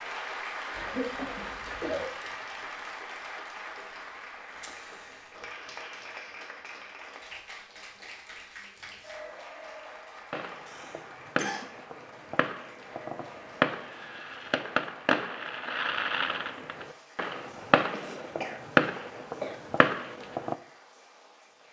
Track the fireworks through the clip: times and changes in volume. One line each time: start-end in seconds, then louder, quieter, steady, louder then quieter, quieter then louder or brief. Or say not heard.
10.3-20.6 louder.